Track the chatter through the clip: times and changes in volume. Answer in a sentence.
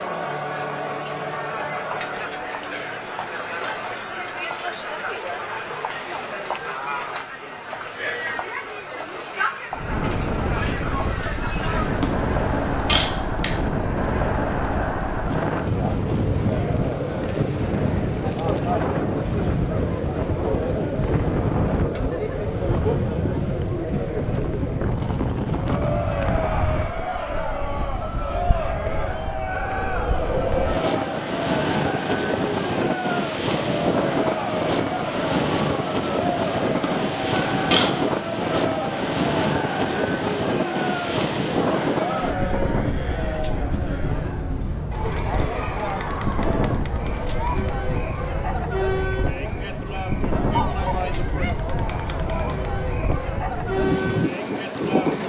You can hear the chatter from 0.0 to 55.2 s, at a steady volume.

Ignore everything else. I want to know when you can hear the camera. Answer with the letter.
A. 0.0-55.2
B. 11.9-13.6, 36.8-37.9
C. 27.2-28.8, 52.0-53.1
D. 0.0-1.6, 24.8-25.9
B.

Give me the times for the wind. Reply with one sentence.
The wind can be heard from 9.7 to 55.2 s.